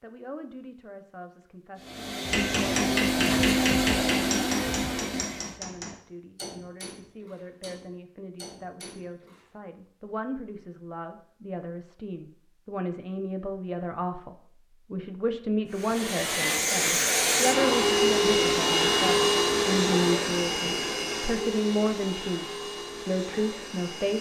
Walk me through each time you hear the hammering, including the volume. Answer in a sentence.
You can hear the hammering from 2.2 to 9.4 s, getting quieter.